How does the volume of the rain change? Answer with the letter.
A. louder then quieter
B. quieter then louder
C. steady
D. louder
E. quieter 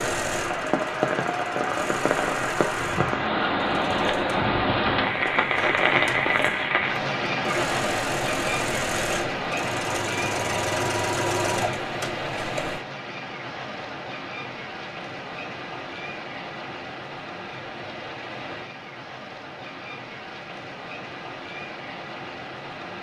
E.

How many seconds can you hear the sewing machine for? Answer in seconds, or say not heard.
13 s.